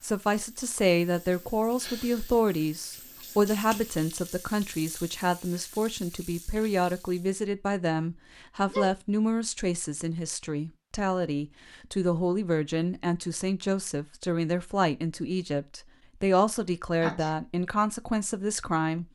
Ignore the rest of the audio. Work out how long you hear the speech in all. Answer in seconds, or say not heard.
19 s.